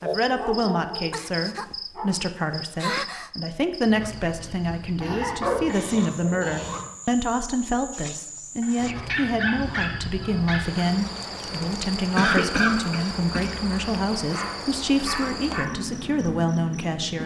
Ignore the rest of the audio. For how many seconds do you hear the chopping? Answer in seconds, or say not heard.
not heard.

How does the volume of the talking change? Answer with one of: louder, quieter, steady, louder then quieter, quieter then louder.
steady.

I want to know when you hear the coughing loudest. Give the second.
12 s.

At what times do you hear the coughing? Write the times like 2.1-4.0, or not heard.
5.0-6.8, 11.7-13.7.